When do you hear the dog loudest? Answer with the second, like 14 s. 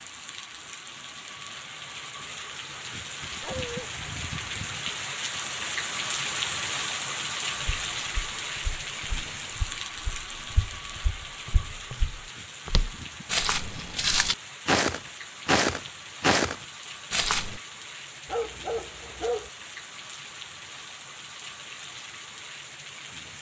19 s.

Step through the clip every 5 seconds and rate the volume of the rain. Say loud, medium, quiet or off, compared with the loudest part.
medium, loud, medium, medium, medium.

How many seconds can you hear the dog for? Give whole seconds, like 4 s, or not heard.
2 s.